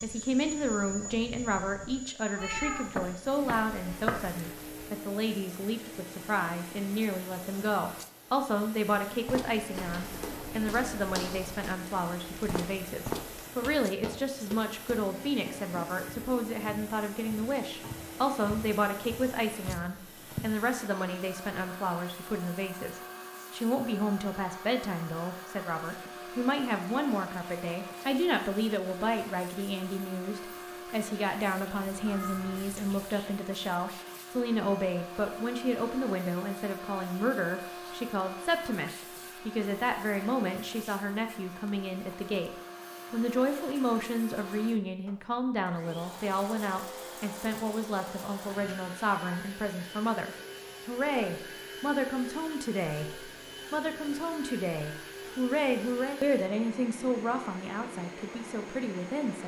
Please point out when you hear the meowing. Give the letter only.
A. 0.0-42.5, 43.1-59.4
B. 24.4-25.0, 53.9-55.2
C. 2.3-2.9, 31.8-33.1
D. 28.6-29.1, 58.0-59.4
C.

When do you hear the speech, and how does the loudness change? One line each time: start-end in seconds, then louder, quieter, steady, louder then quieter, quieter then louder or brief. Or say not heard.
0.0-42.5 steady
43.1-59.4 steady.